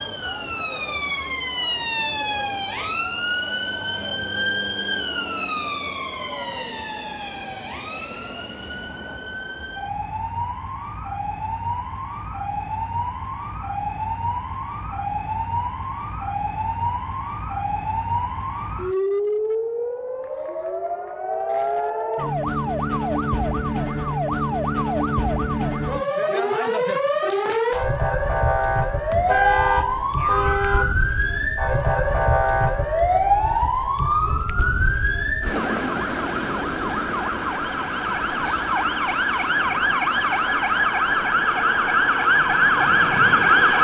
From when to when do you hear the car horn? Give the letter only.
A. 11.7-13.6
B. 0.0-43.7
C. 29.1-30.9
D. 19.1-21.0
C.